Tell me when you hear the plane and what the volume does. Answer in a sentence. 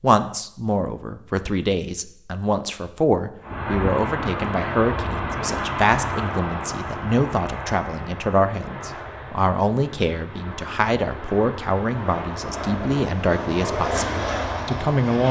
The plane can be heard from 3.4 to 15.2 s, getting quieter then louder.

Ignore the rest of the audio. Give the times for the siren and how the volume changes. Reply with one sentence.
The siren can't be heard in this clip.